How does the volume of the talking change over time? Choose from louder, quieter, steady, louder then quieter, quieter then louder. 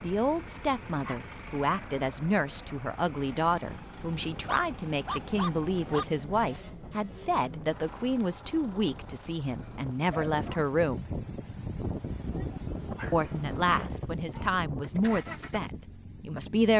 steady.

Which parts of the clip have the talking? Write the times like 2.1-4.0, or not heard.
0.0-11.1, 13.1-16.7.